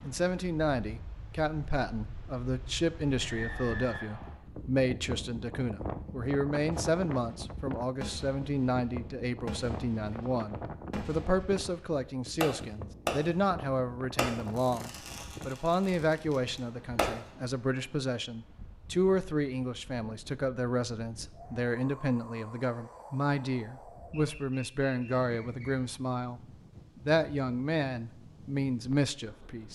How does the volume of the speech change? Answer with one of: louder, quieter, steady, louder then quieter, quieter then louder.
steady.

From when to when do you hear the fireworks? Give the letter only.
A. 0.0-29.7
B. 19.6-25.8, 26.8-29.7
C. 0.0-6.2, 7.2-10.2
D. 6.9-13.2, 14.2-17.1
D.